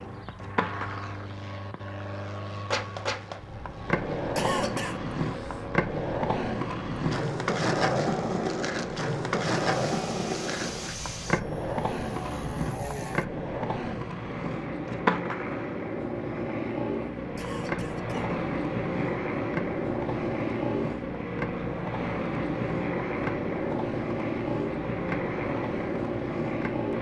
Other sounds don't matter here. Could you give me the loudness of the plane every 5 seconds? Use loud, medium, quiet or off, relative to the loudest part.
medium, medium, medium, loud, loud, loud.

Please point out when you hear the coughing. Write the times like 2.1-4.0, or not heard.
4.3-5.0, 17.4-18.4.